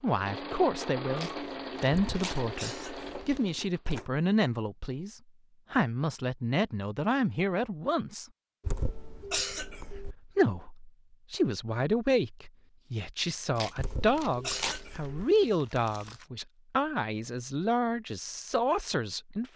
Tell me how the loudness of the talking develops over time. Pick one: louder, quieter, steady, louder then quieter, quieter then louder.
steady.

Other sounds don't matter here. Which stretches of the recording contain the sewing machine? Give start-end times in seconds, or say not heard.
0.0-4.0.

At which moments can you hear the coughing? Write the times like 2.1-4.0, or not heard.
1.9-3.4, 8.6-10.2, 13.8-15.2.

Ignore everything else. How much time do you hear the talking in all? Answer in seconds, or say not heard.
18 s.